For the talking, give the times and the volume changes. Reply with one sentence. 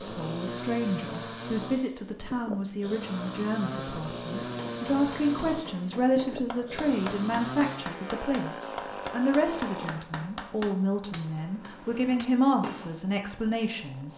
You can hear the talking from 0.0 to 14.1 s, at a steady volume.